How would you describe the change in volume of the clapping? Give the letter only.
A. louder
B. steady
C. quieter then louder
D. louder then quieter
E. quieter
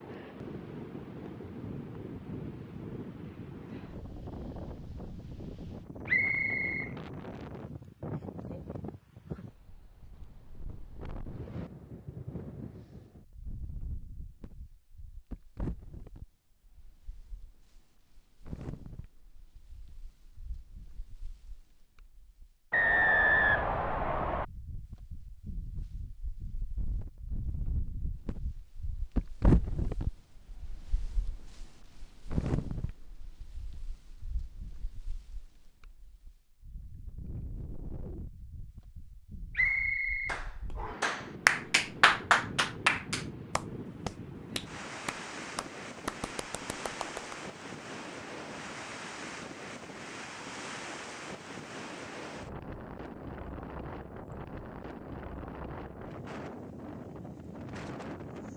D.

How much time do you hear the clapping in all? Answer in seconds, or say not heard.
8 s.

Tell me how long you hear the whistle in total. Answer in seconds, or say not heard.
4 s.